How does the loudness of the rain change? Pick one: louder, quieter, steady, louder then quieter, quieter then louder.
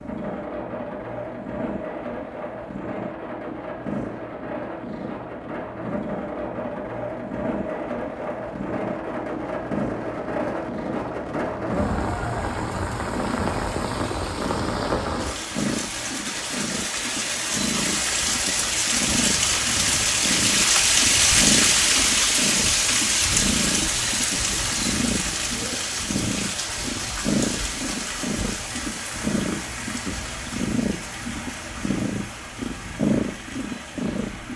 louder then quieter.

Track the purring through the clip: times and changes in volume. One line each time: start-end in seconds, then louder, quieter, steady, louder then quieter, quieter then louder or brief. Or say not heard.
0.0-34.5 louder.